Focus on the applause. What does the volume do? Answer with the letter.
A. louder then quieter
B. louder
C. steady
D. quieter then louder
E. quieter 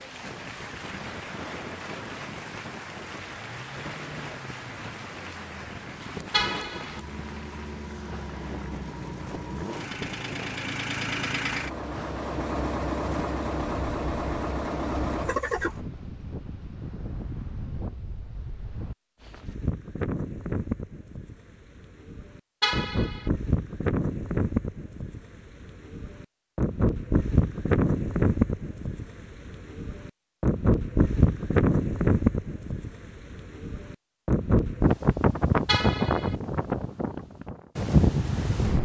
E.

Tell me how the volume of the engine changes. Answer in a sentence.
The loudness of the engine goes up.